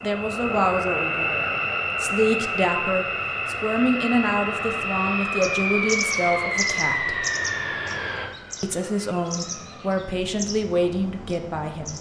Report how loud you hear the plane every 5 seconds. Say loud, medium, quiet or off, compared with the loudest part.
loud, loud, quiet.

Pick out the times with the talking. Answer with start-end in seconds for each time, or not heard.
0.0-7.2, 8.6-11.9.